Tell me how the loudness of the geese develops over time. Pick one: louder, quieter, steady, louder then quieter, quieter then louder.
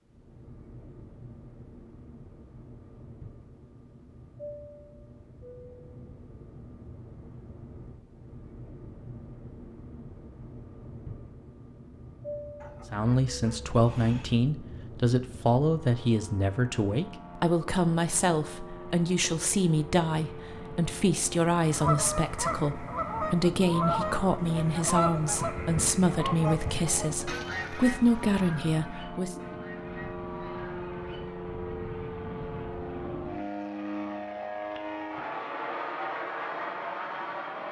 quieter.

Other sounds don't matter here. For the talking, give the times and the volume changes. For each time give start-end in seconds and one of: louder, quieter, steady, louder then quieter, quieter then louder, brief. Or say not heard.
12.9-29.4 steady.